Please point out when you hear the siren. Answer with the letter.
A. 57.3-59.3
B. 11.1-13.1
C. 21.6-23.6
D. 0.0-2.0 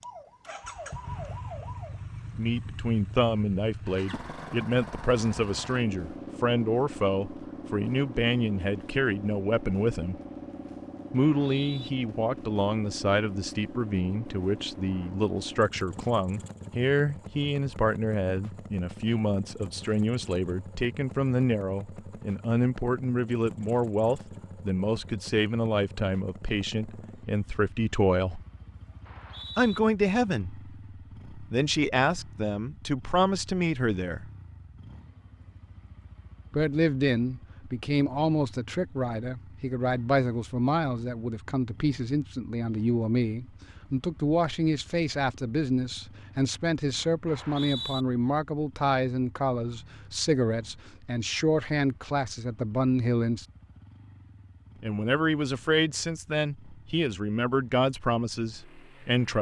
D.